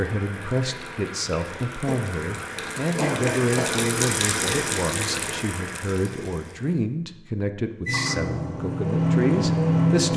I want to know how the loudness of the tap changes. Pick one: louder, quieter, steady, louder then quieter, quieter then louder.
louder then quieter.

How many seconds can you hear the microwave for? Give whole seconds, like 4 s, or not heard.
2 s.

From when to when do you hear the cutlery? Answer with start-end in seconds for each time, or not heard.
not heard.